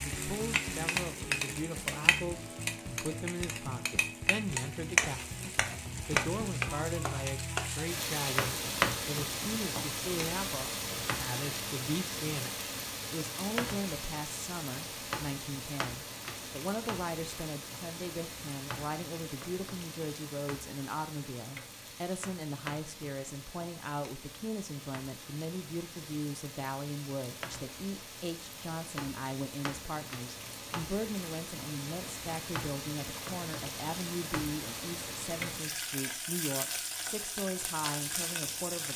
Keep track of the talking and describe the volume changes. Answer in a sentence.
The loudness of the talking stays about the same.